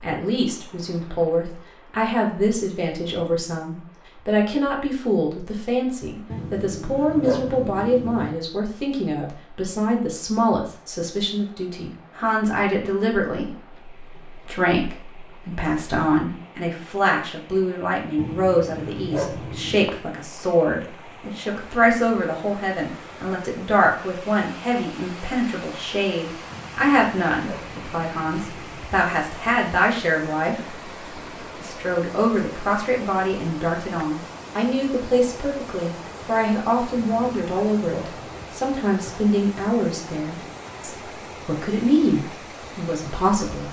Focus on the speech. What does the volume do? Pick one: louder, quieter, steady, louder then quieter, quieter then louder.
steady.